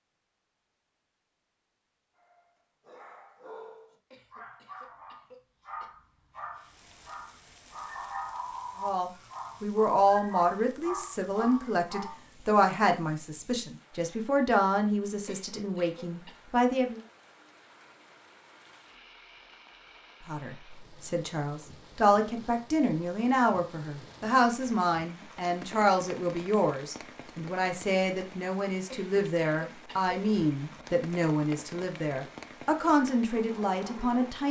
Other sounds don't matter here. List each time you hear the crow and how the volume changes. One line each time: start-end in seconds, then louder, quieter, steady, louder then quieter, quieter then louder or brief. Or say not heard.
not heard.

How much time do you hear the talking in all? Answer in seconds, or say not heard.
22 s.